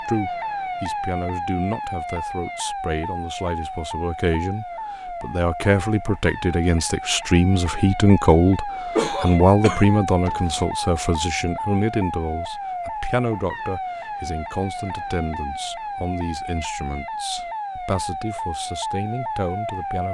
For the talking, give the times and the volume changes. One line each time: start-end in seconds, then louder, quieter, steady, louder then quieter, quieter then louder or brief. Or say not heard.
0.0-20.0 louder then quieter.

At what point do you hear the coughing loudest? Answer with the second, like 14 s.
9 s.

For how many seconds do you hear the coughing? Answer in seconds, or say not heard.
2 s.